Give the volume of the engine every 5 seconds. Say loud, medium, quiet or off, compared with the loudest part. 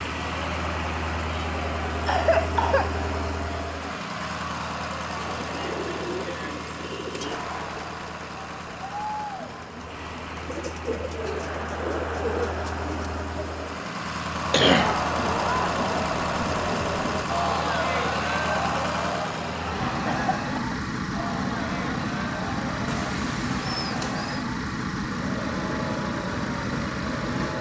loud, medium, medium, loud, loud, loud.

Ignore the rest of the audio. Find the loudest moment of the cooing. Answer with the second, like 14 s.
12 s.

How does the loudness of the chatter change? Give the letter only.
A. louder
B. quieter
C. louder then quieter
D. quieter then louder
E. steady
C.